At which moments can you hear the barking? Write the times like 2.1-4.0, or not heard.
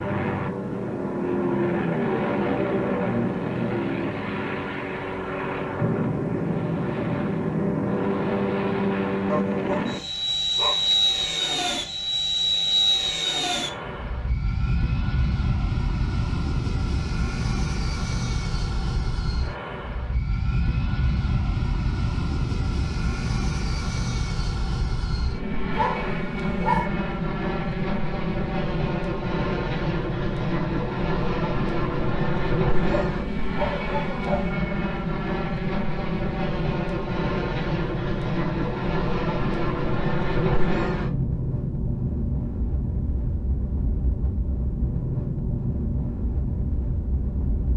9.2-10.9, 25.8-26.9, 33.0-34.5.